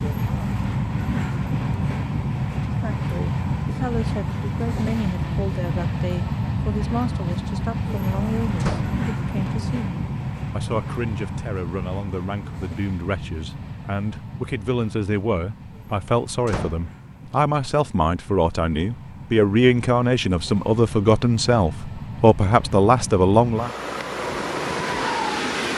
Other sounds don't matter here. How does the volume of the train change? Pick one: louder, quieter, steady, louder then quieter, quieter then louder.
quieter then louder.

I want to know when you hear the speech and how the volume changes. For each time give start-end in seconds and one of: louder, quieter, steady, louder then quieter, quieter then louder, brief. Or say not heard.
2.6-23.7 louder.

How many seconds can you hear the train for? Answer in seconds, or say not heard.
26 s.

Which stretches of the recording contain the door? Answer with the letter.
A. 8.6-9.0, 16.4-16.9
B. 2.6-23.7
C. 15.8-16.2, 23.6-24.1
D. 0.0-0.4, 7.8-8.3
A.